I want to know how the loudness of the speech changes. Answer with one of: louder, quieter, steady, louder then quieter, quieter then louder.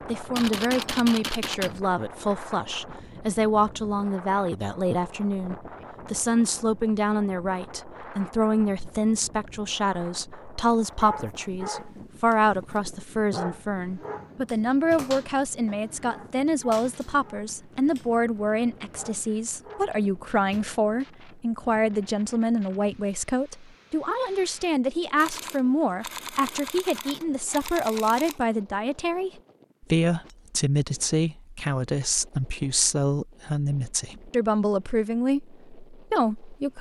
steady.